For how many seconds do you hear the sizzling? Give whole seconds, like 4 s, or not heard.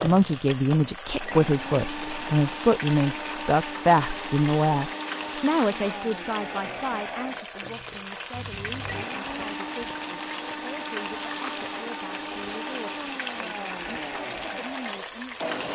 16 s.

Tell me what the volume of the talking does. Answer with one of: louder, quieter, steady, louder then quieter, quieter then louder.
quieter.